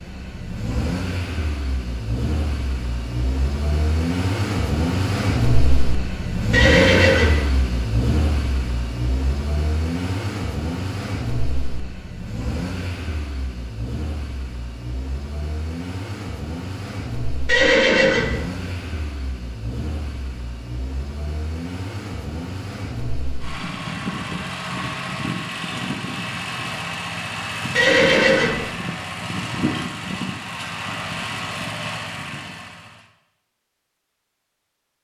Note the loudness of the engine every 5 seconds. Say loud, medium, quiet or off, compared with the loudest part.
loud, loud, medium, medium, medium, loud, medium.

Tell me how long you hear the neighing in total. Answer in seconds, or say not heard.
3 s.